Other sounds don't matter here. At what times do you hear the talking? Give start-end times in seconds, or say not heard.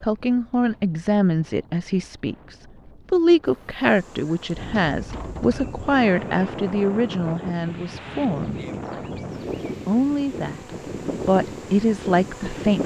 0.0-9.2, 9.8-12.8.